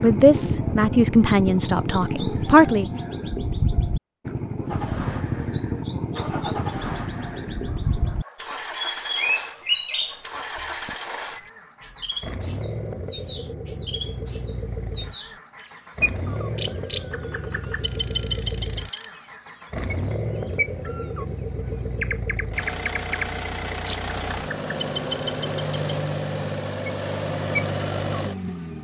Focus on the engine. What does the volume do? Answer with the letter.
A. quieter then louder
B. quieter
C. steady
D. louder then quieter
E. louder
E.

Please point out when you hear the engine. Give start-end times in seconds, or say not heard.
4.6-28.7.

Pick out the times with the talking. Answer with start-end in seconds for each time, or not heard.
0.0-2.9.